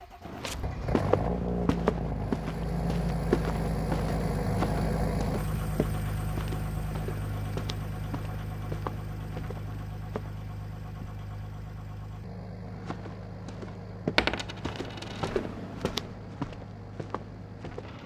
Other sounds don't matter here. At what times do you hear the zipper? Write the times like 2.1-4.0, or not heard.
not heard.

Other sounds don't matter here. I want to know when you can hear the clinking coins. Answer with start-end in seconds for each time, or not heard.
14.2-15.3.